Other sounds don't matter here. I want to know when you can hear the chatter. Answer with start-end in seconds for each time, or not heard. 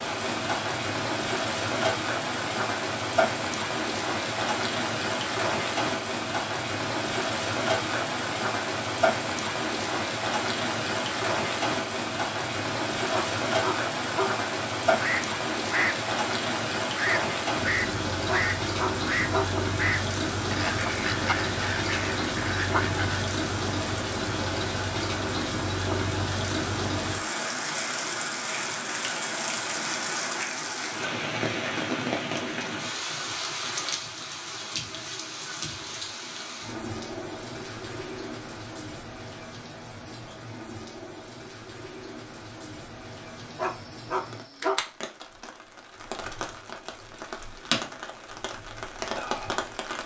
not heard.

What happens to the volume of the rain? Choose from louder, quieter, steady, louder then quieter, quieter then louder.
quieter.